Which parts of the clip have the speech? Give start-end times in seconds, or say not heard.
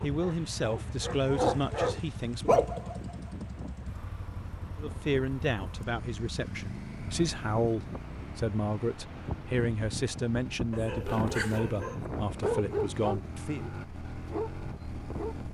0.0-2.6, 4.8-13.7.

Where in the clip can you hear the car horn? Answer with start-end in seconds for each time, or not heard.
not heard.